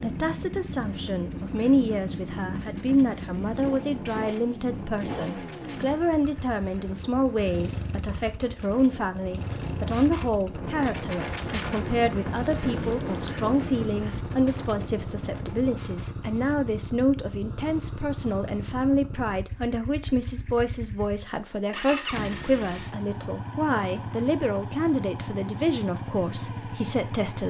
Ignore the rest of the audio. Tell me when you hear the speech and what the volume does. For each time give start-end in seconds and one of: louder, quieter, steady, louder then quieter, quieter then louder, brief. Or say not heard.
0.0-27.4 steady.